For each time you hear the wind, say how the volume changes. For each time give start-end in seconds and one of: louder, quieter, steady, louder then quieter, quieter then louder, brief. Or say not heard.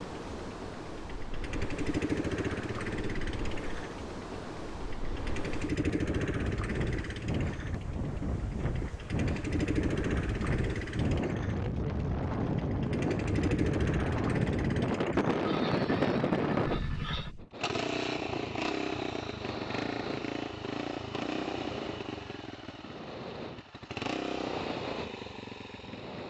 0.0-17.4 louder.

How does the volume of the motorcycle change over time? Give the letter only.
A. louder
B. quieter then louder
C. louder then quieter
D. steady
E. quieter
D.